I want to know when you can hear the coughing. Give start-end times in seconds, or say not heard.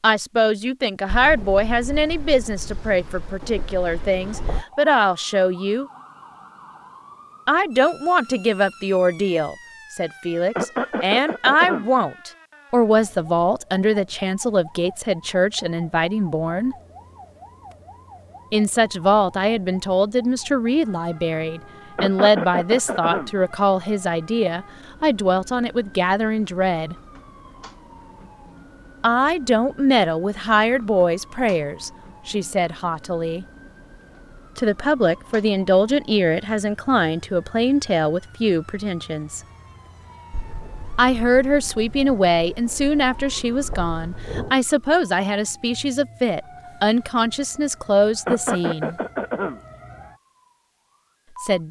10.6-11.9, 21.9-23.3, 48.2-49.6.